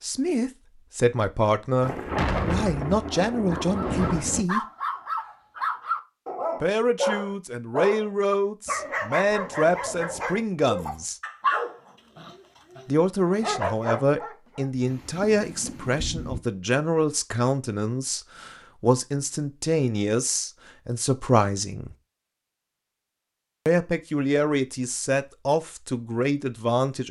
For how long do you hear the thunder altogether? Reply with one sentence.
You can hear the thunder for 4 seconds altogether.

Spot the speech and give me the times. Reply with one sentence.
The speech can be heard from 0.0 to 4.6 s, from 6.6 to 11.2 s, from 12.8 to 21.9 s and from 23.6 to 27.0 s.